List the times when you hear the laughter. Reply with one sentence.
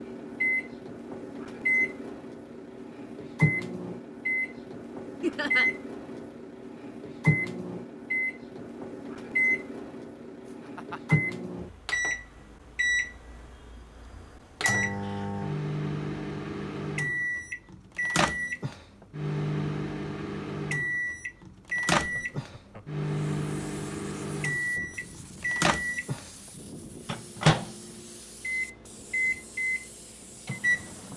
You can hear the laughter from 5.2 to 5.7 s, from 10.7 to 11.2 s and from 21.9 to 23.0 s.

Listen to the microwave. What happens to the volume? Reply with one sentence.
The loudness of the microwave stays about the same.